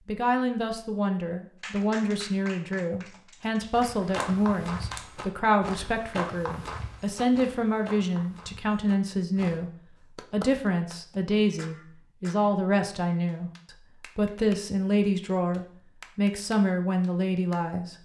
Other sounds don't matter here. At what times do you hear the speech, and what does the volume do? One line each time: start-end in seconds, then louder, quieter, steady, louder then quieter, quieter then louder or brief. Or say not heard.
0.1-17.9 steady.